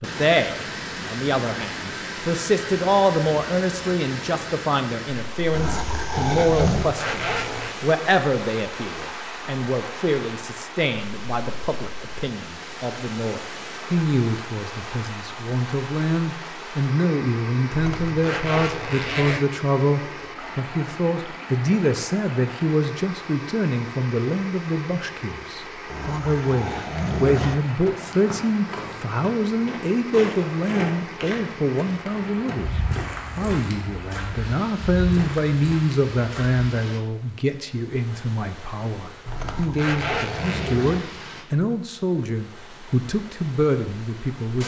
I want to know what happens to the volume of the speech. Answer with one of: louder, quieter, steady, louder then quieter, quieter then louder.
steady.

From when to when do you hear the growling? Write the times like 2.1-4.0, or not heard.
5.5-7.0, 25.9-27.6, 39.3-41.0.